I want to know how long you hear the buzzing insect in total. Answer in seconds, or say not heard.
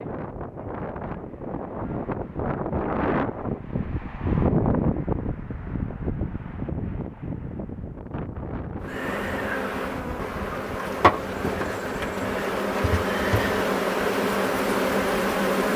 7 s.